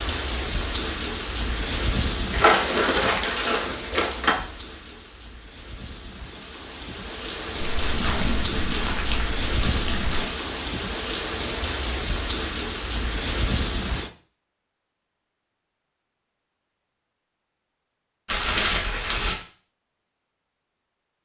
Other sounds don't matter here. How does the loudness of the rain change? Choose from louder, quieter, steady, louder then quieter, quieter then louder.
quieter then louder.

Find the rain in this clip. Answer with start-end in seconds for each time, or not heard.
0.0-14.1.